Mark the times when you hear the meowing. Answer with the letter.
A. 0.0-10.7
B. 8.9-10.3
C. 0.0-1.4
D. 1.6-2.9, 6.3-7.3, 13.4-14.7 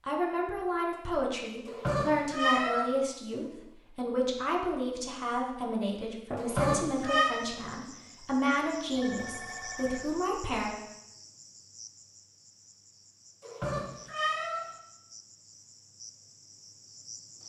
D.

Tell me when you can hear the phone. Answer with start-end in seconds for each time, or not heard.
8.9-10.3.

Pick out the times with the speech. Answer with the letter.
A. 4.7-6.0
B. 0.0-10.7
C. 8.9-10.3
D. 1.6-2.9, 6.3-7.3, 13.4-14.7
B.